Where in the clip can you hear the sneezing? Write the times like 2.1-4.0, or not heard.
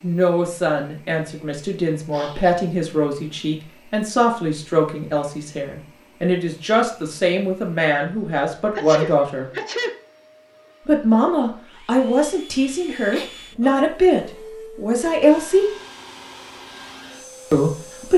1.9-2.6, 8.7-9.9, 12.7-13.8.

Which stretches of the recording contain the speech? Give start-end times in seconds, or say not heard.
0.0-9.4, 10.8-15.7, 17.5-18.1.